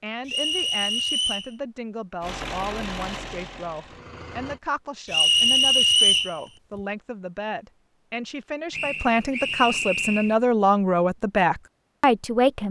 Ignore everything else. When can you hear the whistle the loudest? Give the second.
6 s.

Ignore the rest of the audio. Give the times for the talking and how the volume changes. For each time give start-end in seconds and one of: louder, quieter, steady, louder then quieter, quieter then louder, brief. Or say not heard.
0.0-12.6 louder.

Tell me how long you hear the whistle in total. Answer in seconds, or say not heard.
4 s.